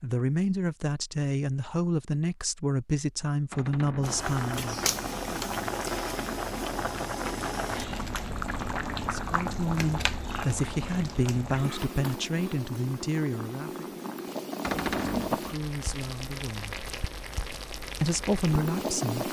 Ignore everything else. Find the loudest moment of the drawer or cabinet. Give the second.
15 s.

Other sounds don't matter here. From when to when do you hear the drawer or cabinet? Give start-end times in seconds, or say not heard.
3.5-4.2, 8.4-9.2, 14.6-15.4.